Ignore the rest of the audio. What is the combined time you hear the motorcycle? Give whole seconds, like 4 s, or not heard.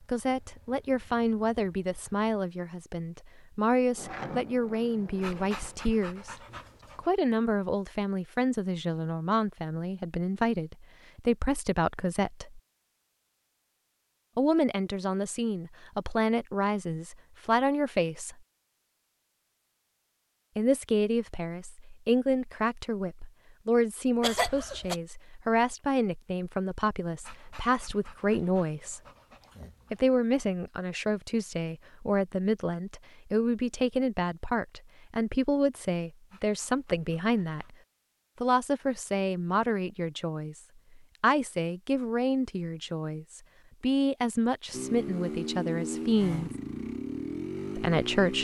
6 s.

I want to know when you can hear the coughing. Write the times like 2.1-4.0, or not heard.
24.2-24.9.